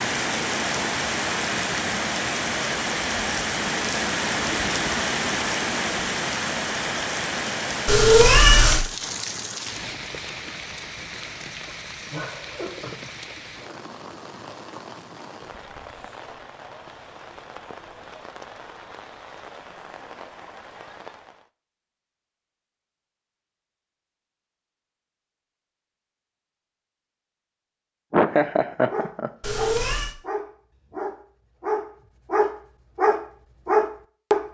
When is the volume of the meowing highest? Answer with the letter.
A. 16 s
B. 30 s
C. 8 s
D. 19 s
C.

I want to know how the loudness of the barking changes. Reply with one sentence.
The loudness of the barking goes up.